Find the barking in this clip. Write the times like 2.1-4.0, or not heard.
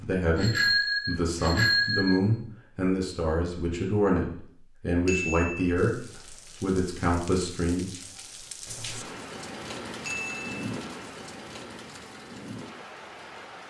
not heard.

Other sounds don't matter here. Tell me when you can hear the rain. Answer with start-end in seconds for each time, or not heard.
5.8-13.6.